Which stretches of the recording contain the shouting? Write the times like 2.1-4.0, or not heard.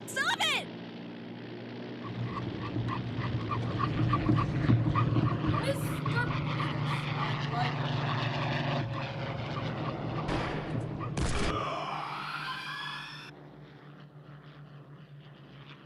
0.1-0.7, 5.5-7.8, 11.3-13.3.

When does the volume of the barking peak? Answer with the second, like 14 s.
5 s.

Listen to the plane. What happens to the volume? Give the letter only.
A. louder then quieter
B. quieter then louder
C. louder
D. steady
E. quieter
A.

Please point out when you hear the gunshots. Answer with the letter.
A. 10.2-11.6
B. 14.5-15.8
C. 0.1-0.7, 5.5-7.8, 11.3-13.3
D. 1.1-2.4
A.